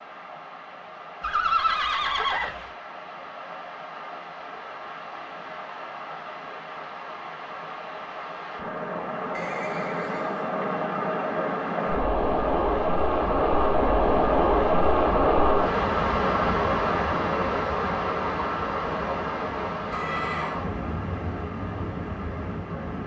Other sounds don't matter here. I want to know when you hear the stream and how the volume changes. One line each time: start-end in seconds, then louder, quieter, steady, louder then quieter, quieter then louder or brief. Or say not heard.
0.0-23.0 louder then quieter.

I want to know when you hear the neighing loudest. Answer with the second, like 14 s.
2 s.